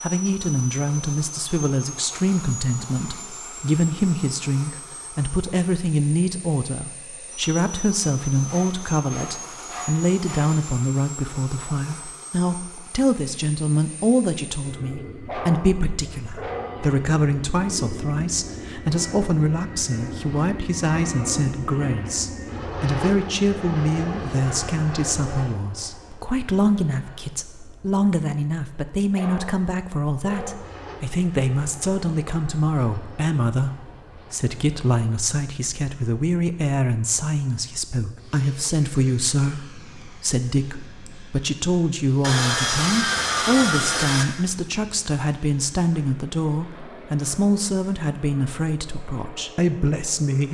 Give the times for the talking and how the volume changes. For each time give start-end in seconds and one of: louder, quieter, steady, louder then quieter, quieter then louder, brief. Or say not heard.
0.0-50.4 steady.